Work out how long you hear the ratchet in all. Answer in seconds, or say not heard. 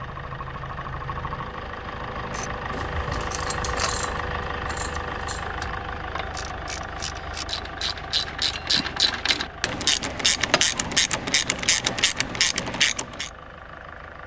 11 s.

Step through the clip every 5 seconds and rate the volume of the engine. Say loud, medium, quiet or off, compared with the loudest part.
loud, loud, medium.